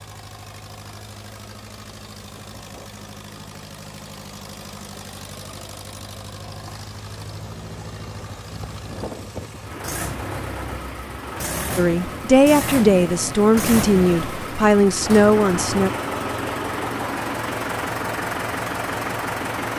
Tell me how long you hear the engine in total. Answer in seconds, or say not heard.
20 s.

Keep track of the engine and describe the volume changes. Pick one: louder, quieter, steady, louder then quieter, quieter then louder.
louder.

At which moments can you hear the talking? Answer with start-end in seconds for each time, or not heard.
11.8-15.9.